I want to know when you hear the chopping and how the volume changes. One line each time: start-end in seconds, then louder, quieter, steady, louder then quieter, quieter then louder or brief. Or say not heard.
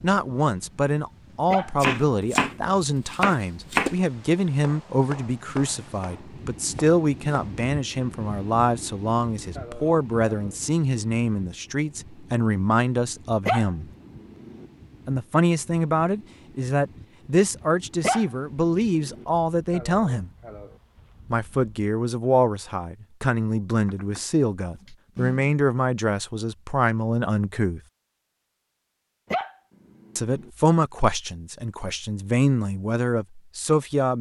1.8-7.5 quieter
23.9-25.6 brief.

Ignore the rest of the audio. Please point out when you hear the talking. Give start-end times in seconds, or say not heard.
0.0-13.8, 15.1-20.3, 21.3-27.8, 30.1-34.1.